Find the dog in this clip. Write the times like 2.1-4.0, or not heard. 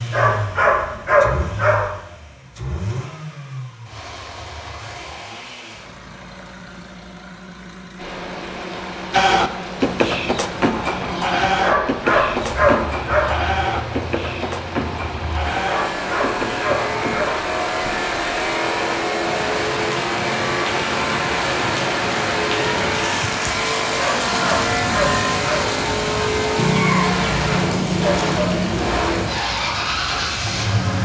0.1-1.9, 11.6-13.3, 15.7-17.4, 23.9-25.7.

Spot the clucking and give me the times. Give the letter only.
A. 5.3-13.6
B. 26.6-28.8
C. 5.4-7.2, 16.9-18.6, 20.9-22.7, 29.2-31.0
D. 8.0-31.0
B.